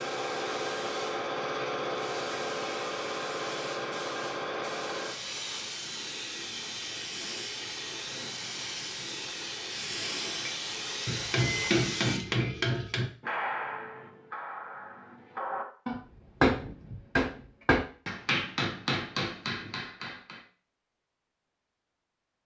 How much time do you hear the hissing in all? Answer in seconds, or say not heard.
12 s.